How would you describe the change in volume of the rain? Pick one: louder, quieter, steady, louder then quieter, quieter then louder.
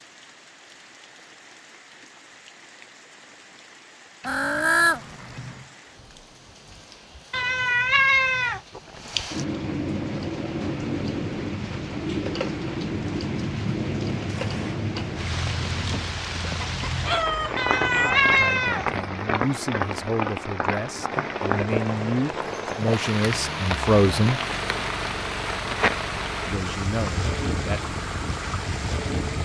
louder.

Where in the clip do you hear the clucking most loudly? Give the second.
5 s.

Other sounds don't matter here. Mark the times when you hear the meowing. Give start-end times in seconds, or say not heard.
7.3-8.6, 17.6-18.9.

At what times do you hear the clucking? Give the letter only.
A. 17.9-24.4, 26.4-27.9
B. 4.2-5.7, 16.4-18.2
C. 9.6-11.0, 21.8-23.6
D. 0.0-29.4
B.